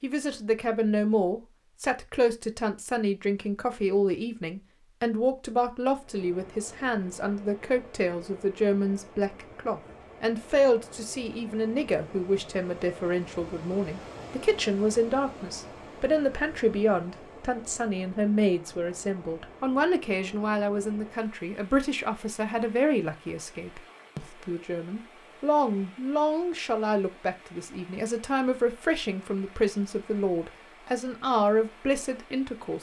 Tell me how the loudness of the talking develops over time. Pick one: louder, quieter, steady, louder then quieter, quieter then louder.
steady.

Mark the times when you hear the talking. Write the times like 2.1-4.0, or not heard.
0.0-32.7.